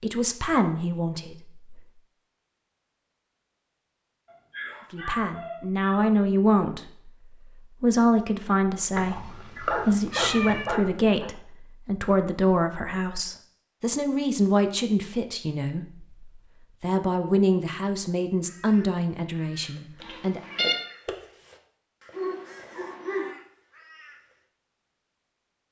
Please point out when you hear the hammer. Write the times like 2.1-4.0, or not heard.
not heard.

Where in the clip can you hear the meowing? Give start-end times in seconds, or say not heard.
8.9-10.7, 20.0-20.8.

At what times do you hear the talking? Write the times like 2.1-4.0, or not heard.
0.0-1.9, 4.9-20.4.